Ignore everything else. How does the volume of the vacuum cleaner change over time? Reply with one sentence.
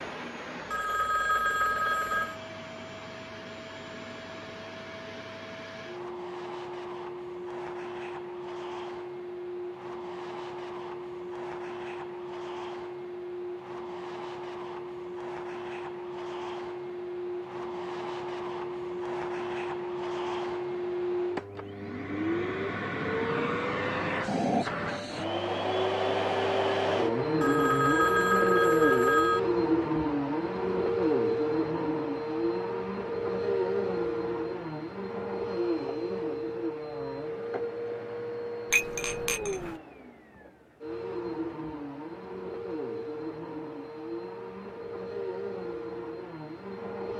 The loudness of the vacuum cleaner goes up, then down.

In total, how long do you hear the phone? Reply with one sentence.
The phone can be heard for 4 seconds in total.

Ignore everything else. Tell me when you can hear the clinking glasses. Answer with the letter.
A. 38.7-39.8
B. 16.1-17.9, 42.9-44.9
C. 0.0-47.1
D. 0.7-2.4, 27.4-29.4
A.